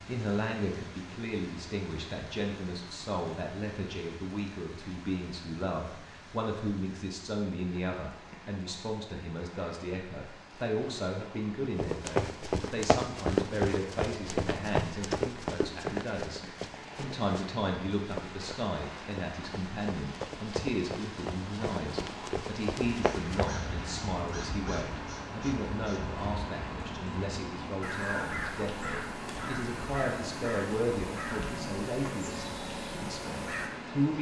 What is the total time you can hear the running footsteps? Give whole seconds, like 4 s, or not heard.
12 s.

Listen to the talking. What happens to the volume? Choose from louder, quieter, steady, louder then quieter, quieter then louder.
steady.